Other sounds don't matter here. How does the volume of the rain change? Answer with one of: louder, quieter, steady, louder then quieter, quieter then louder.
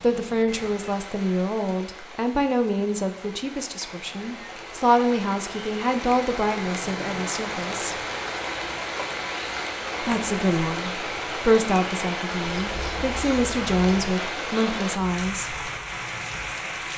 louder.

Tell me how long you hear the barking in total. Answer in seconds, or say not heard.
not heard.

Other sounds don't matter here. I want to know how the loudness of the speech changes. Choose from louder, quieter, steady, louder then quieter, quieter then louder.
steady.